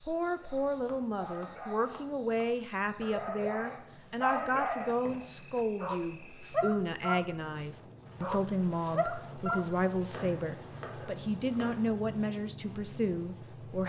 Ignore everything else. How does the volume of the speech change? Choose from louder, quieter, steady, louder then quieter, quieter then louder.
steady.